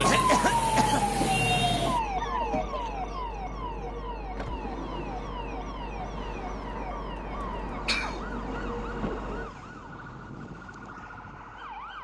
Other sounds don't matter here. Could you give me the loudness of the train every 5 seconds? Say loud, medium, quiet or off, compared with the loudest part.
loud, loud, quiet.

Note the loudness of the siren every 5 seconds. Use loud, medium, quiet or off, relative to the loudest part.
loud, quiet, quiet.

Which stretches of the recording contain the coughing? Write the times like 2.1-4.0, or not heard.
0.0-1.1, 7.8-8.6.